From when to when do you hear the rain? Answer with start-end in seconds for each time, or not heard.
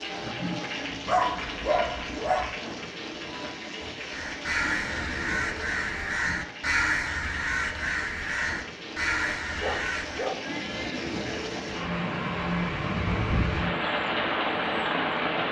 0.0-15.4.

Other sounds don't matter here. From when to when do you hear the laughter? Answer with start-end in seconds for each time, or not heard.
not heard.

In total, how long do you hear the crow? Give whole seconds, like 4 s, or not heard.
6 s.